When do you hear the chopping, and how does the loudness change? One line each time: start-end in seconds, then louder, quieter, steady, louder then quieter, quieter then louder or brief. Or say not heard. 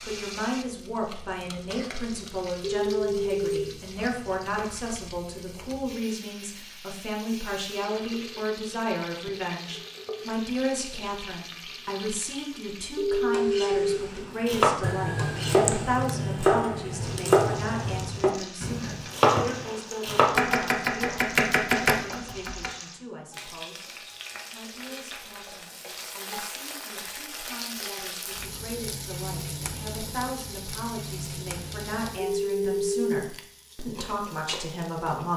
14.4-22.7 steady.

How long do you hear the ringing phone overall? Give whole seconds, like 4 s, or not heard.
3 s.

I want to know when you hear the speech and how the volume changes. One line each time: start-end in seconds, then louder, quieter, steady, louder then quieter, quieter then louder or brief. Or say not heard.
0.1-35.3 quieter then louder.